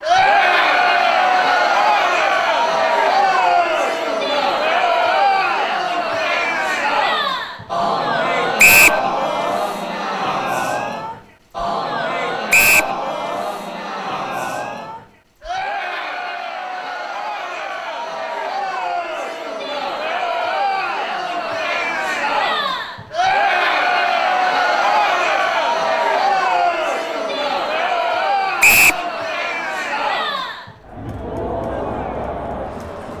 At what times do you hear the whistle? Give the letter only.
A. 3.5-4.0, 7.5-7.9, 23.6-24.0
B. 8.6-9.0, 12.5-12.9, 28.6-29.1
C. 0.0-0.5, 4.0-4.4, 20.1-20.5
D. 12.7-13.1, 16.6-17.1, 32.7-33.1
B.